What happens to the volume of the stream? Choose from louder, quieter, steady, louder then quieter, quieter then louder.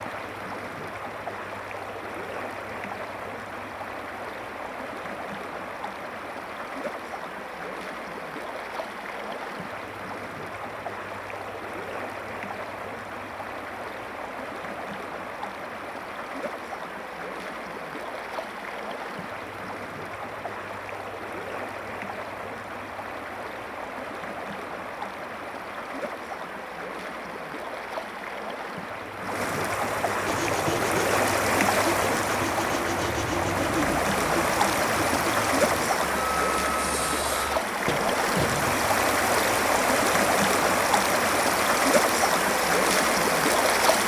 louder.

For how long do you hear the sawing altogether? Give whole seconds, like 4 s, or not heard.
9 s.